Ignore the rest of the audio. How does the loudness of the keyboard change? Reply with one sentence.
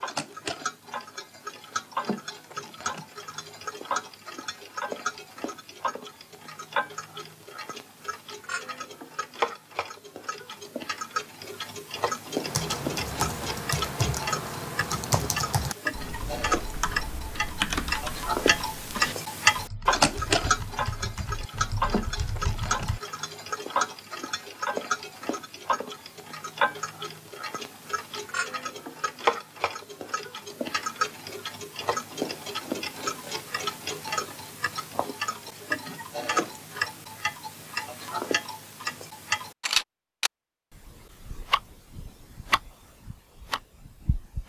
The loudness of the keyboard goes down.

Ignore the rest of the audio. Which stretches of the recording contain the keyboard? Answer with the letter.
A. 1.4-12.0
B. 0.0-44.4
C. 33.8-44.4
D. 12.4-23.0
D.